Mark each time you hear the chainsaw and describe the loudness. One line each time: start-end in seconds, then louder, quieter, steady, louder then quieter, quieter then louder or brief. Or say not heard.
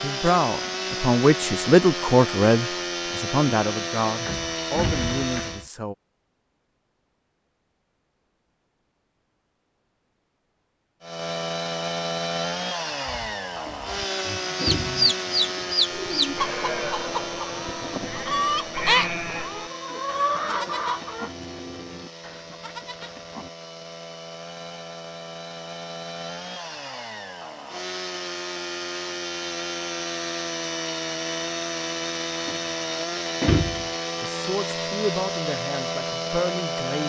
0.0-5.7 steady
11.0-37.0 quieter then louder.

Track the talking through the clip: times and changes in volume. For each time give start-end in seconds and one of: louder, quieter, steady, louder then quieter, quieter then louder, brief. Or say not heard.
0.0-6.0 quieter
34.2-37.0 brief.